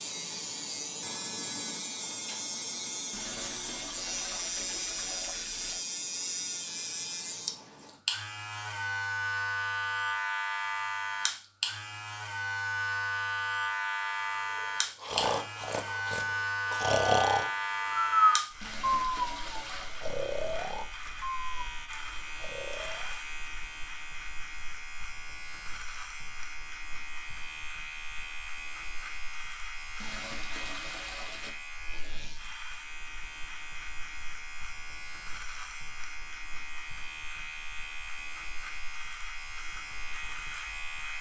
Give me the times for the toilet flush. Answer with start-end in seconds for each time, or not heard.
3.1-5.8, 18.6-20.1, 30.0-31.6.